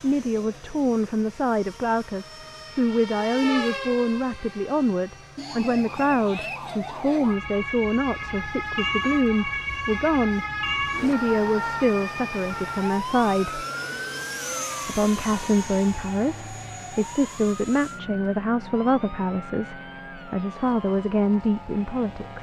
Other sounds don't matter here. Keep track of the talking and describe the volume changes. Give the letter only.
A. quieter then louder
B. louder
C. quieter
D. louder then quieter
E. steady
E.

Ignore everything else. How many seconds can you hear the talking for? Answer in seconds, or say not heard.
21 s.